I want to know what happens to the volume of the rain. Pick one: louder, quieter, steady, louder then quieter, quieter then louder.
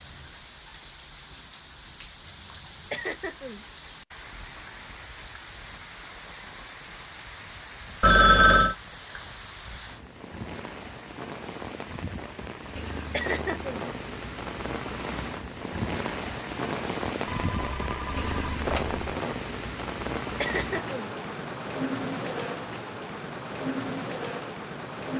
louder.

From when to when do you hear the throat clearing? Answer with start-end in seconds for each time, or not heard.
2.9-3.6, 13.1-13.8, 20.4-21.1.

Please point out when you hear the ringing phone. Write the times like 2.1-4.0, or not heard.
8.0-8.8, 17.2-19.1.